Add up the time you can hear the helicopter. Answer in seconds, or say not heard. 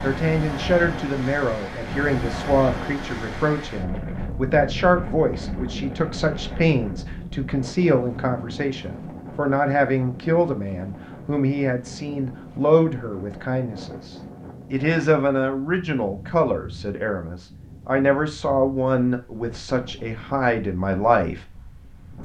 not heard.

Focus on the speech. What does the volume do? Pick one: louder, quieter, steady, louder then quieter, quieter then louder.
steady.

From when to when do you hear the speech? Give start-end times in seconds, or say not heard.
0.0-21.4.